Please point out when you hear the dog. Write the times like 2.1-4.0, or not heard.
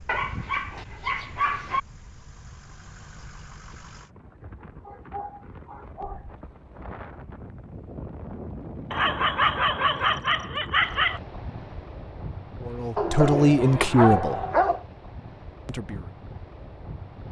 0.1-1.8, 4.8-6.5, 8.9-11.2, 12.9-14.8.